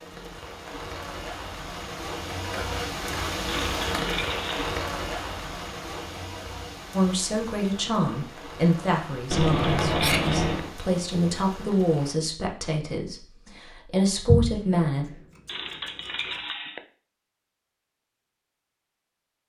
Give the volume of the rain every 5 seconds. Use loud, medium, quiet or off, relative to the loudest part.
loud, medium, medium, off.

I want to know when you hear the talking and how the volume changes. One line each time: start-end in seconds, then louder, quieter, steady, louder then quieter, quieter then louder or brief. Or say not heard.
6.9-15.1 steady.